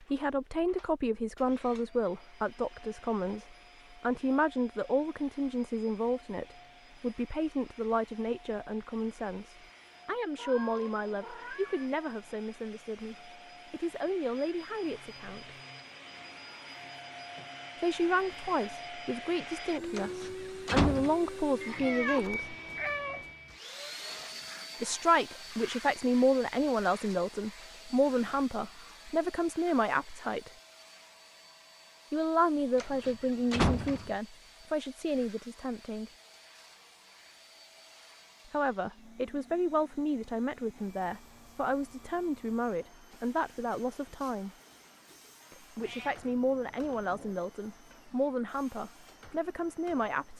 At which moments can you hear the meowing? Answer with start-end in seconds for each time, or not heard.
10.3-11.9, 21.8-23.3, 45.8-47.4.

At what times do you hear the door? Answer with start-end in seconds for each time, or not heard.
19.9-21.1, 32.8-34.1.